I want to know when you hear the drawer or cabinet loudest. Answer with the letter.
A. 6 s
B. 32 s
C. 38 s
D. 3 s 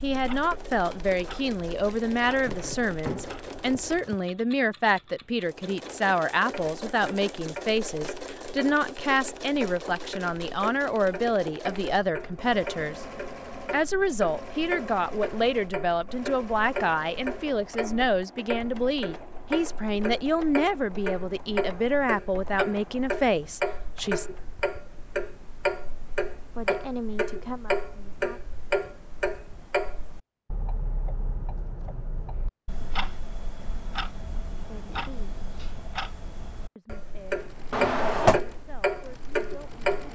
C.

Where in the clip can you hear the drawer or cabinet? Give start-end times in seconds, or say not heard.
2.5-4.2, 37.7-38.4.